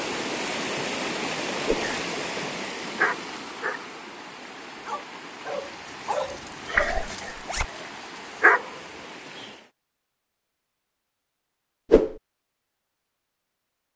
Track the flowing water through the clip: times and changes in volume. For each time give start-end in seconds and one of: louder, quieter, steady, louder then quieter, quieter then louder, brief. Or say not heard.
0.0-9.7 quieter.